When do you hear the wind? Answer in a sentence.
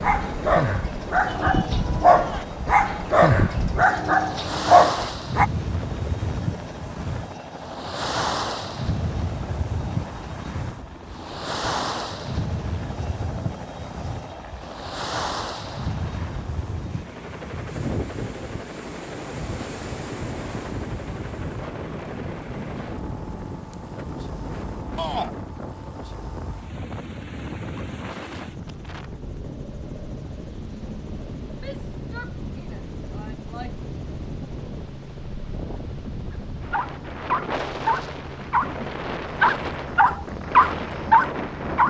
The wind can be heard from 0.0 to 41.8 s.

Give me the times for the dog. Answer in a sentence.
You can hear the dog from 0.0 to 5.5 s and from 36.3 to 41.8 s.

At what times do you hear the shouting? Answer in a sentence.
The shouting can be heard from 1.2 to 2.5 s, from 24.9 to 25.4 s and from 31.6 to 33.8 s.